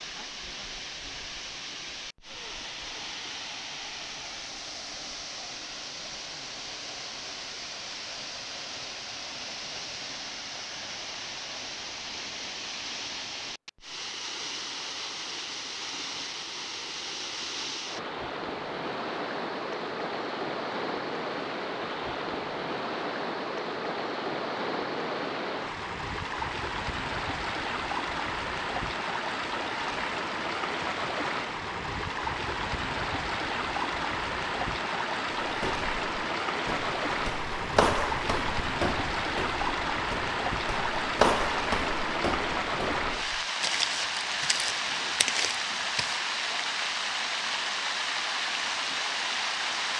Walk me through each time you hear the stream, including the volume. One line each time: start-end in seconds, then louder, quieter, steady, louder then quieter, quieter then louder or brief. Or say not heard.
0.0-49.9 louder.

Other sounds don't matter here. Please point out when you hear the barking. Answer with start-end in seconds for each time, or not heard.
not heard.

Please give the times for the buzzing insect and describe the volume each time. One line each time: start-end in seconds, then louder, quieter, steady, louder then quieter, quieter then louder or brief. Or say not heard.
not heard.